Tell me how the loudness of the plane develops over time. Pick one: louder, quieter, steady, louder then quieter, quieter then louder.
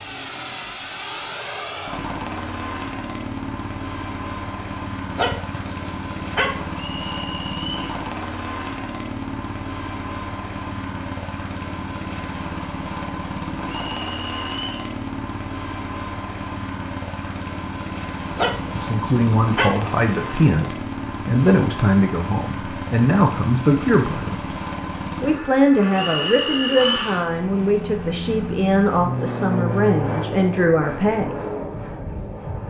steady.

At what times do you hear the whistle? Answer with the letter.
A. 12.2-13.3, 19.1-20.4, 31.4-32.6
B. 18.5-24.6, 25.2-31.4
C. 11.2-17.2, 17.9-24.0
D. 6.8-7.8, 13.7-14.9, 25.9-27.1
D.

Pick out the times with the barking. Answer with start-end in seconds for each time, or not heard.
5.0-6.7, 18.2-19.9.